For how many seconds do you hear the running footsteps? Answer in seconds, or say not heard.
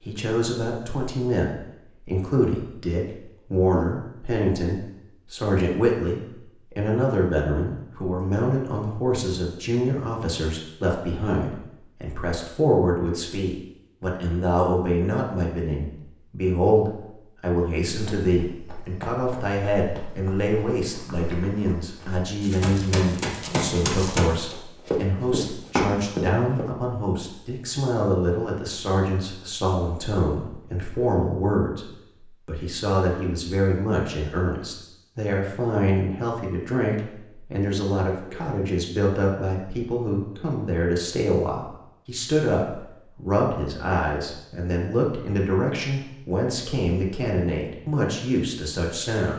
9 s.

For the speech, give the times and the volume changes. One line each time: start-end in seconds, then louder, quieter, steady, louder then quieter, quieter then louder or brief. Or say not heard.
0.0-49.3 steady.